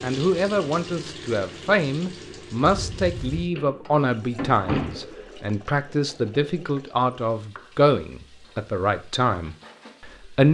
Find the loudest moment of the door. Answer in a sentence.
The volume of the door peaks at 5 seconds.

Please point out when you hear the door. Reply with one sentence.
You can hear the door from 3.5 to 5.0 s.